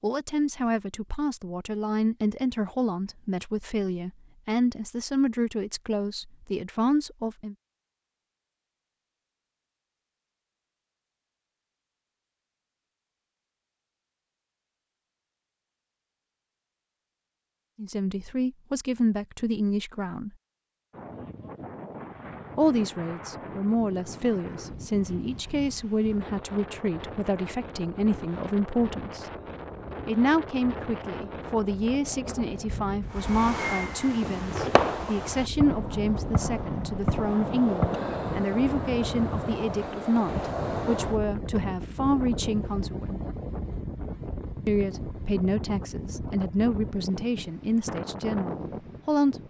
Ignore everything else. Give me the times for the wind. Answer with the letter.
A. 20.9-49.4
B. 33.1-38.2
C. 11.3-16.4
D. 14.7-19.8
A.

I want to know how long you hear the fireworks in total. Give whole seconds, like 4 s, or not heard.
5 s.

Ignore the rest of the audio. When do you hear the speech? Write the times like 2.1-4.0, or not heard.
0.0-7.5, 17.8-20.3, 22.6-29.2, 30.1-43.2, 44.6-49.4.